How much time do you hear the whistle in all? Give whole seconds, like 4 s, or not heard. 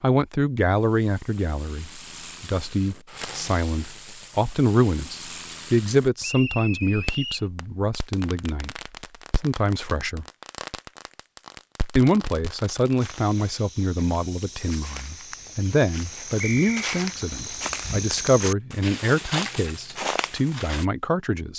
2 s.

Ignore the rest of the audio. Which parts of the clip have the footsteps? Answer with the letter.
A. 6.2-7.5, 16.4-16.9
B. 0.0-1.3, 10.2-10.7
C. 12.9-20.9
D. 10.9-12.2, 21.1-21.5
C.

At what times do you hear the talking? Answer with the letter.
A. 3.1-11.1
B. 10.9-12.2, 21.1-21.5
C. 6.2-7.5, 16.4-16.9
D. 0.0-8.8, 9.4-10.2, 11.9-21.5
D.